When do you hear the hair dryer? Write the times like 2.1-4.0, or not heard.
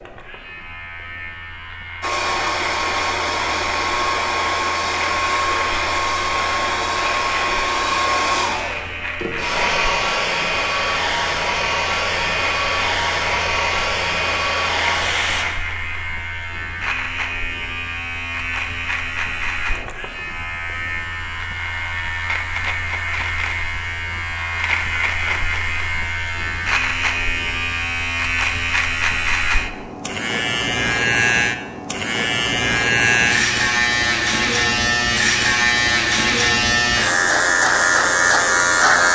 2.0-15.4.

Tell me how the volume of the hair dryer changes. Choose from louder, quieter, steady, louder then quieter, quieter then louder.
steady.